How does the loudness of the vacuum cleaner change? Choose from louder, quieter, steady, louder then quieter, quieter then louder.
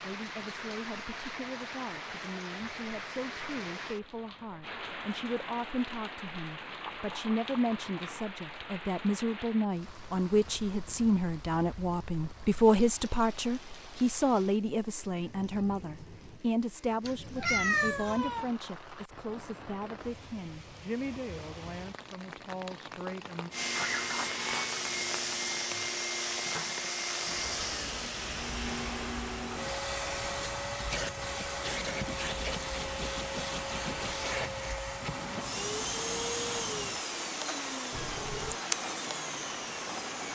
steady.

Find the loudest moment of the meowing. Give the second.
18 s.